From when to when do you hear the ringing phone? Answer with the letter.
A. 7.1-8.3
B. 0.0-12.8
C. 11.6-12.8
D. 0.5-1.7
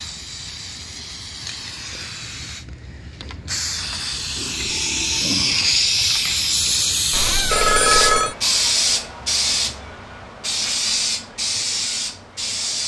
A.